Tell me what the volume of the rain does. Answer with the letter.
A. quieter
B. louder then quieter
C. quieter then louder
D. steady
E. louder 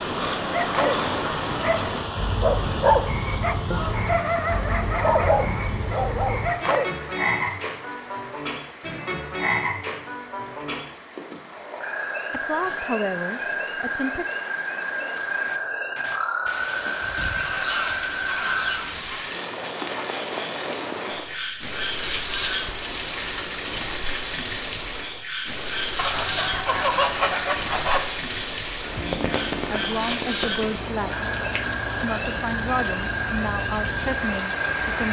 C.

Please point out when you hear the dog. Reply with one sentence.
The dog can be heard from 0.5 to 6.9 s.